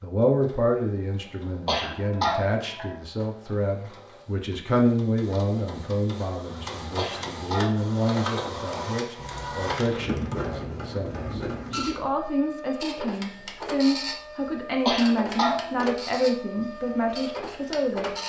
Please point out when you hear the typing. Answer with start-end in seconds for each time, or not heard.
9.2-10.8.